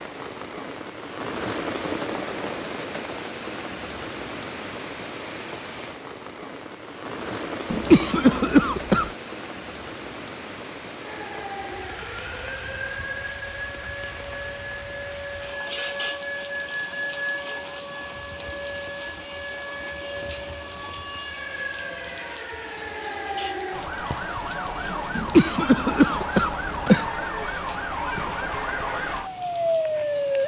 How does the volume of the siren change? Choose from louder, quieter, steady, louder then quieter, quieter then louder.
louder.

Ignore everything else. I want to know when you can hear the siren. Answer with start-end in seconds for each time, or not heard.
11.0-30.4.